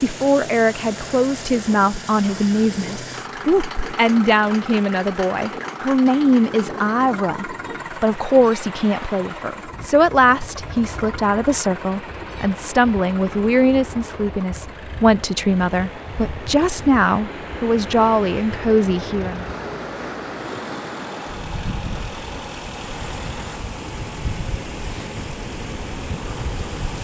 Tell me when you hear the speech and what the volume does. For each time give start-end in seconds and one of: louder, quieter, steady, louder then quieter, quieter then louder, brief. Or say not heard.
0.0-19.6 steady.